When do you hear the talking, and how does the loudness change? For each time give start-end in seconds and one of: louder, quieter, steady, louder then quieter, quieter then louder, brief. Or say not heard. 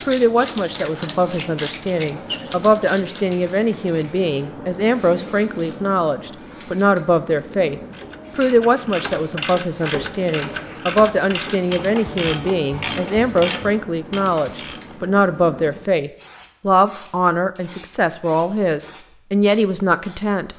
0.1-20.5 steady.